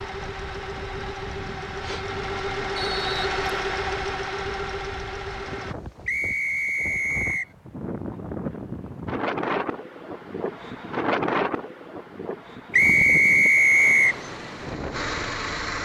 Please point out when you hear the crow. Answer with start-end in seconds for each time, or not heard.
not heard.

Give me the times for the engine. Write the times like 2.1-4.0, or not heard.
0.0-5.8, 14.1-15.8.